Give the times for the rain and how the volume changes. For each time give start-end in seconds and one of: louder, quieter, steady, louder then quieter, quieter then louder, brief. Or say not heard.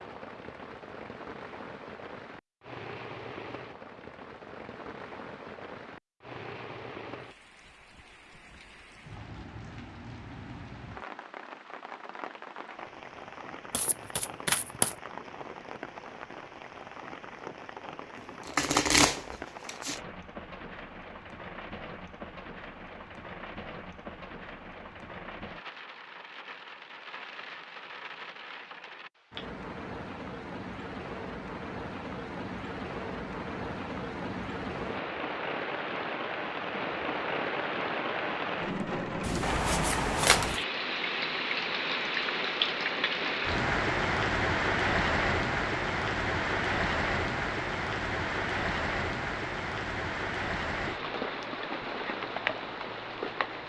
0.0-53.6 louder.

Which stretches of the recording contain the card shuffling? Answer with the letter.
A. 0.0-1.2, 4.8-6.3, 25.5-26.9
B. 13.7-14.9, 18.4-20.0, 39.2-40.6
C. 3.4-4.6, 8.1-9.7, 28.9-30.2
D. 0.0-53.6
B.